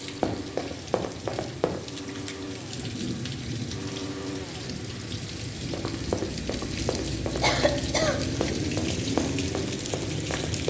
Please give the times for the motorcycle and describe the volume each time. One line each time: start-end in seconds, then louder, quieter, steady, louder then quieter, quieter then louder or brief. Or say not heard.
0.0-10.6 louder.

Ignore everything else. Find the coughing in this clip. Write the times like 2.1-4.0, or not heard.
7.4-8.4.